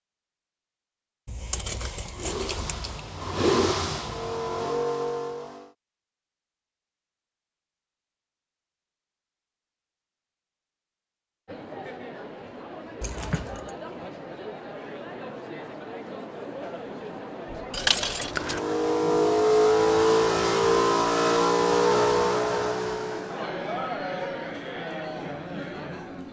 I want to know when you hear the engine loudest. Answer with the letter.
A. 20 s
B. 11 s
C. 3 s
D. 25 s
A.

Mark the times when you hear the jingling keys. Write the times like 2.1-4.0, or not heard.
1.2-3.0, 13.0-13.7, 17.7-18.6.